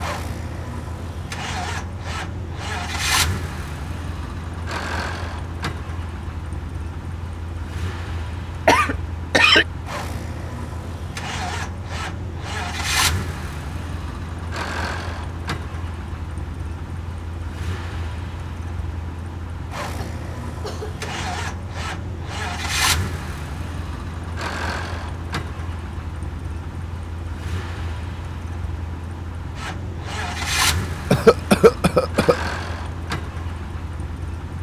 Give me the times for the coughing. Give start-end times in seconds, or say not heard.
8.7-9.7, 19.9-21.2, 31.1-32.4.